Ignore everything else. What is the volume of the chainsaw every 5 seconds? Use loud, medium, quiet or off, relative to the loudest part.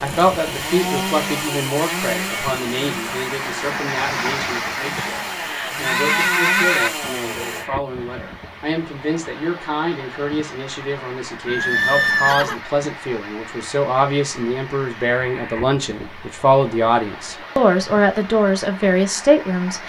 loud, loud, off, off.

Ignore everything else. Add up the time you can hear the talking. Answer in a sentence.
The talking can be heard for 20 seconds in total.